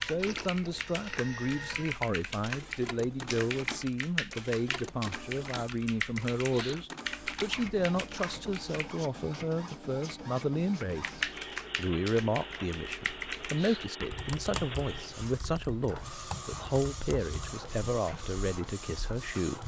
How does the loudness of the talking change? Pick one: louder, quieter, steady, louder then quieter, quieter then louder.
steady.